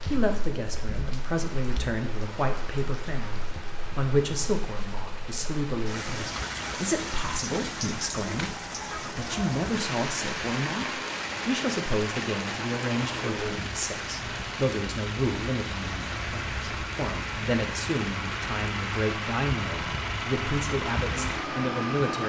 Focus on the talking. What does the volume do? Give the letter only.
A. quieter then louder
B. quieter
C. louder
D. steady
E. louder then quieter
D.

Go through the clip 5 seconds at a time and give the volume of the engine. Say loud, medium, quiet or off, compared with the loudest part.
quiet, medium, medium, loud, loud.